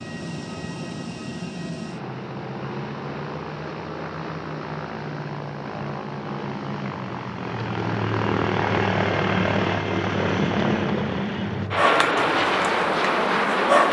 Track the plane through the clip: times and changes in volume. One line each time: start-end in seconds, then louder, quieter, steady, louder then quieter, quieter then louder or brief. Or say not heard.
0.0-13.8 louder.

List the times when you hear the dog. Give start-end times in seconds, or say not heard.
11.8-13.8.